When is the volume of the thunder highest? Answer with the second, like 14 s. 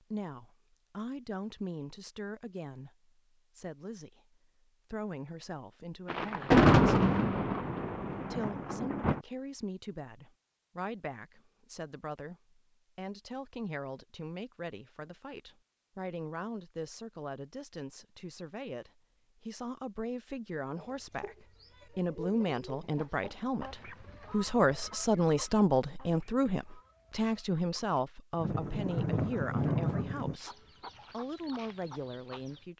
7 s.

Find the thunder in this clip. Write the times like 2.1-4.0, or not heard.
6.0-9.2, 28.4-30.4.